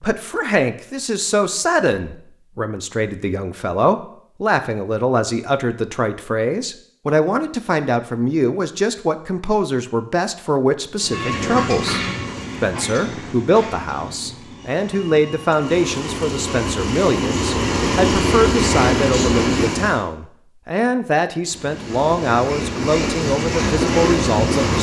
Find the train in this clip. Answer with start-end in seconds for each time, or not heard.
10.9-20.0, 21.4-24.7.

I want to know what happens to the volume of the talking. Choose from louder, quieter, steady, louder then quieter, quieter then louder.
steady.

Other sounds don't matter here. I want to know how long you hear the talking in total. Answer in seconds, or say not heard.
25 s.